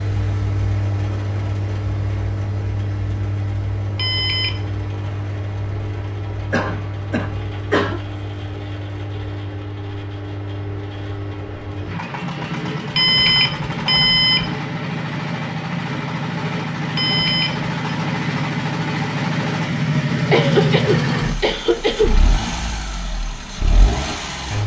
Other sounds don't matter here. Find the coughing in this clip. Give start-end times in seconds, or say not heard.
6.5-8.0, 20.3-22.2.